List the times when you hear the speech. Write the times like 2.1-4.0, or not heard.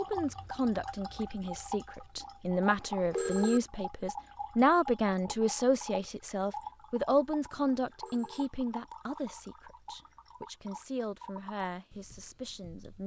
0.0-13.0.